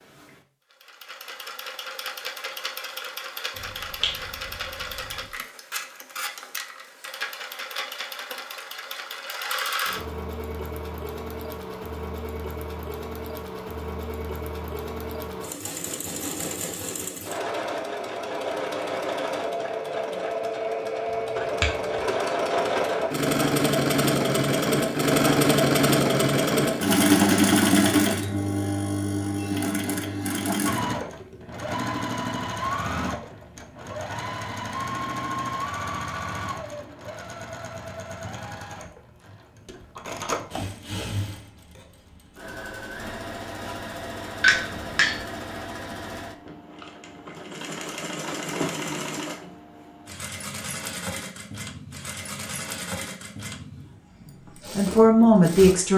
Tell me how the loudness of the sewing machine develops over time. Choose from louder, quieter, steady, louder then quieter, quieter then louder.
louder then quieter.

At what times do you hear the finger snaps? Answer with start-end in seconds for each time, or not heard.
3.5-5.3, 21.1-22.1, 44.4-45.2.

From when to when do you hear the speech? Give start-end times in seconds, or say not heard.
54.8-55.9.